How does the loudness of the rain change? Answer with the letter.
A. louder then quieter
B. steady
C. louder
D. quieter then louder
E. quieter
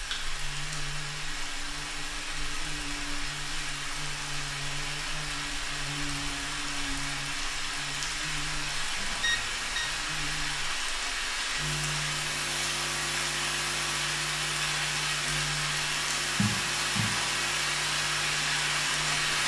C.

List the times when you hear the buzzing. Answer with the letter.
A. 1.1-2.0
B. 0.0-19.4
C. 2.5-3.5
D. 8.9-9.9
B.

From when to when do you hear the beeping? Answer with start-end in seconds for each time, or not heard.
8.9-9.9.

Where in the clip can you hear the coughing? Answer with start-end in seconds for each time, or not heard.
not heard.